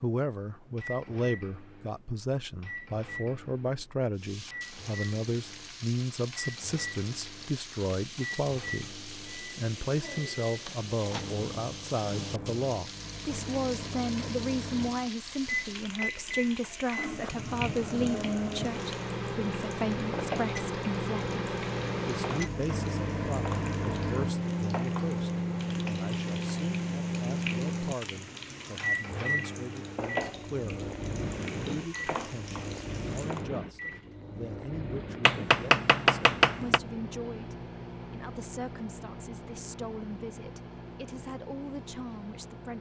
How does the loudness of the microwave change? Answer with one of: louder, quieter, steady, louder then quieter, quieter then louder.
louder then quieter.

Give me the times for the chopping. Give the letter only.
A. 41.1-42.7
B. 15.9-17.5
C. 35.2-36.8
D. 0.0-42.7
C.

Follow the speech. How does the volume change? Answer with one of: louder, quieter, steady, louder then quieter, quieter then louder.
quieter.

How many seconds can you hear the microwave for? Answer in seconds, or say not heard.
43 s.